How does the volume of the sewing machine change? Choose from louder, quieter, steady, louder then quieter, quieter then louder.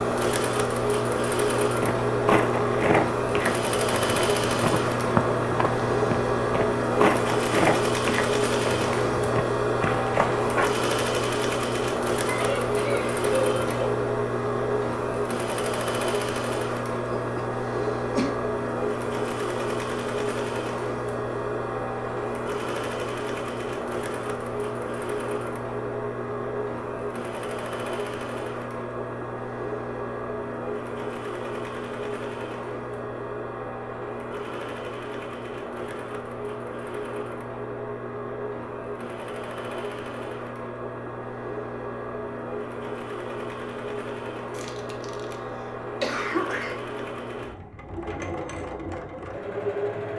quieter.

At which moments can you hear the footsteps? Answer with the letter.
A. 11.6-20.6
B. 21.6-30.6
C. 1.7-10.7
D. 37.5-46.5
C.